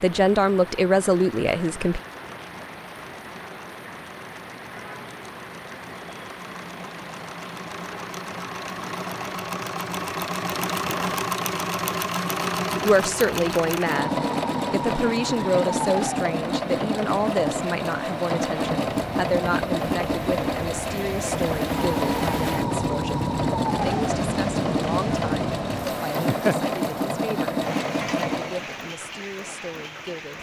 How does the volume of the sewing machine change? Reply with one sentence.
The loudness of the sewing machine goes up.